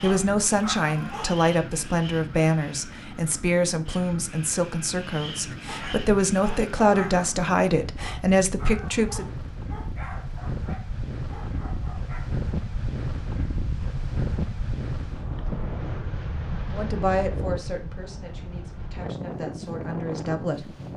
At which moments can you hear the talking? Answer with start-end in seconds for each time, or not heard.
0.0-9.2, 16.7-20.6.